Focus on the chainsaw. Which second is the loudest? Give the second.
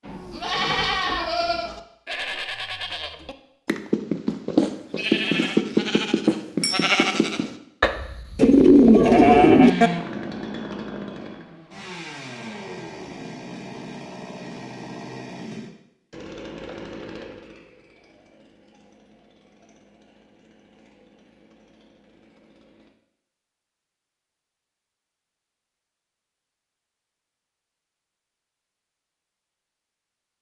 10 s.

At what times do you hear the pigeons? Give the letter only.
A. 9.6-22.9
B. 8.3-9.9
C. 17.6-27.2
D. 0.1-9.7
B.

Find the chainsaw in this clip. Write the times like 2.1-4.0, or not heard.
9.6-22.9.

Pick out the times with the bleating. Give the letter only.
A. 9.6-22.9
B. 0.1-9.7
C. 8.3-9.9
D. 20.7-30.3
B.